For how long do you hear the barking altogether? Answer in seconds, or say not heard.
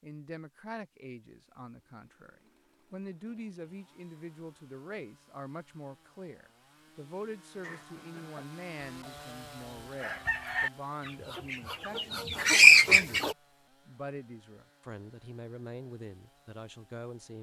not heard.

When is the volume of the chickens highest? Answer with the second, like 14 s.
13 s.